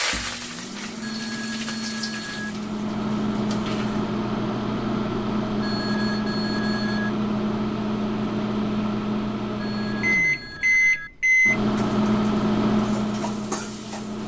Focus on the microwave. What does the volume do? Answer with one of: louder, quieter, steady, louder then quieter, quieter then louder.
louder.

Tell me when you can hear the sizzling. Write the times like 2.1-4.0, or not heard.
0.0-4.1, 11.3-14.2.